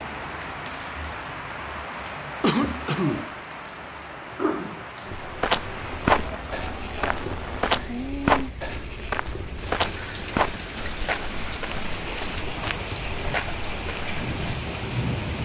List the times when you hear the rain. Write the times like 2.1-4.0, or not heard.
0.0-15.4.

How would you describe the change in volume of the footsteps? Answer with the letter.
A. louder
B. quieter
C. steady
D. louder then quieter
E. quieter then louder
B.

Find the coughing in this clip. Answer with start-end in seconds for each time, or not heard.
2.4-3.3.